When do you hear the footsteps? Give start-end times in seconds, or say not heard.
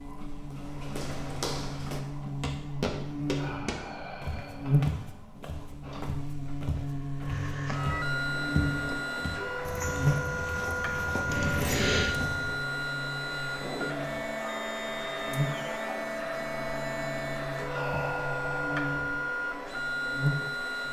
0.5-12.6.